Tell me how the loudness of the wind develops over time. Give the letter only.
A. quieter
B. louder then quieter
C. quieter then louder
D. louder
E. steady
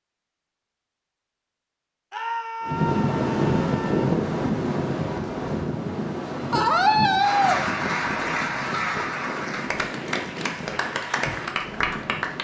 A.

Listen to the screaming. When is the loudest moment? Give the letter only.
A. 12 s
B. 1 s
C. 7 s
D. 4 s
C.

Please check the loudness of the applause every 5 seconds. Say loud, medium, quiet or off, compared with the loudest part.
off, loud, loud.